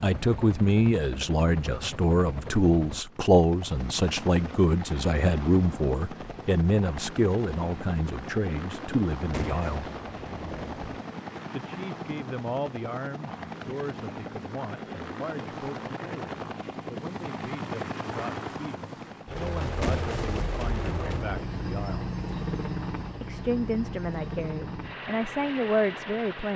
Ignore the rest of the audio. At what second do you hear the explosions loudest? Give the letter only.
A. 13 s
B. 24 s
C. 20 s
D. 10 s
C.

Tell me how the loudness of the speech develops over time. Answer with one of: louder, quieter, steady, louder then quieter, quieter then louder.
quieter then louder.